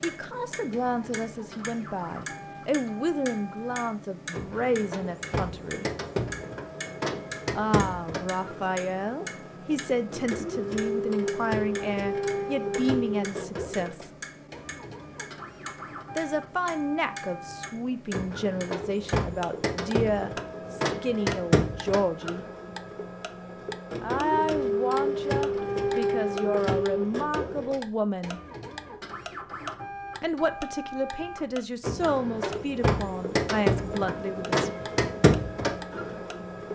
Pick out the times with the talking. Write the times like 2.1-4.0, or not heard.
0.0-5.8, 7.5-14.1, 16.1-22.4, 24.0-28.4, 30.2-34.6.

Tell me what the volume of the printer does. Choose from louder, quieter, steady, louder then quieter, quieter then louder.
louder.